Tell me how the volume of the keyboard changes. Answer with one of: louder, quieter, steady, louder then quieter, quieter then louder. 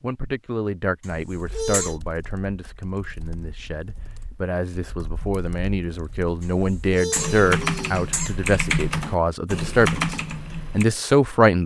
louder.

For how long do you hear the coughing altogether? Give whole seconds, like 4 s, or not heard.
3 s.